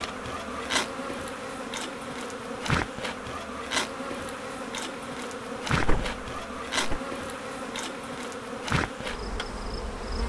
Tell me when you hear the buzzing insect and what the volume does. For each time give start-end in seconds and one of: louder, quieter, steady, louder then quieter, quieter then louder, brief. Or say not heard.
0.0-10.2 steady.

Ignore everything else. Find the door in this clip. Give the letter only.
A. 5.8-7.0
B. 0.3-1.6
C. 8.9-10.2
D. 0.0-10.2
A.